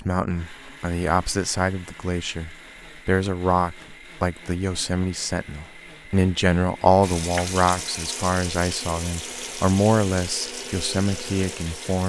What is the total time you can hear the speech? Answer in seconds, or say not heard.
12 s.